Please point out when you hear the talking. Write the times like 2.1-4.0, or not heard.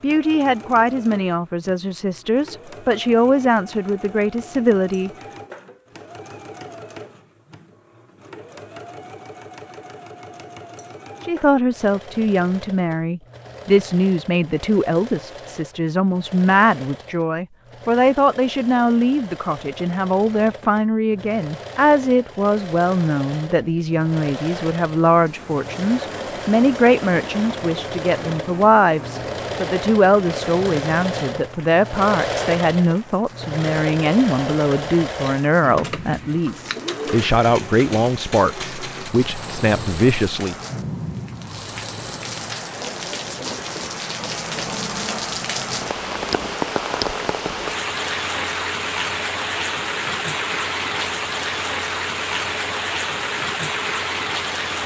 0.0-5.1, 11.2-40.5.